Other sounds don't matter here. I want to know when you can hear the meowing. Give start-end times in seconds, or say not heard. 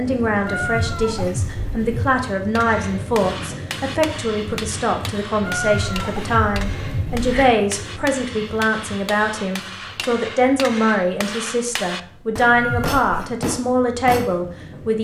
0.5-2.2, 5.4-7.5, 12.4-13.3.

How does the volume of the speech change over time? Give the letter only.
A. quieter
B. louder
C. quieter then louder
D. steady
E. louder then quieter
D.